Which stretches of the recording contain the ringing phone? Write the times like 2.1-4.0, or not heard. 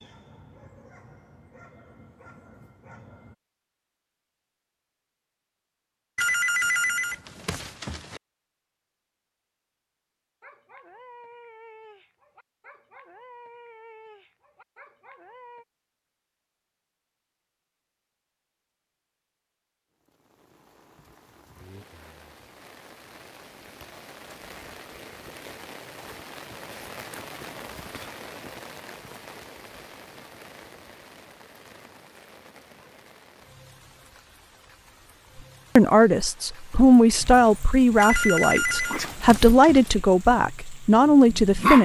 6.2-8.2, 38.0-40.0.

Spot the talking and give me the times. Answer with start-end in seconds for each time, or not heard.
35.8-41.8.